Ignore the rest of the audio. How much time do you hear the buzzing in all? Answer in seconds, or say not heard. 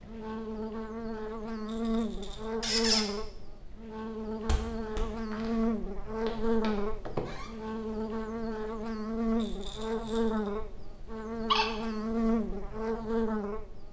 14 s.